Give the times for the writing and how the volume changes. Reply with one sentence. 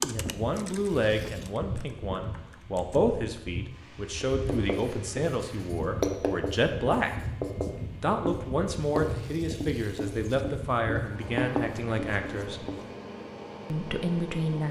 The writing can be heard from 4.3 to 12.8 s, getting quieter then louder.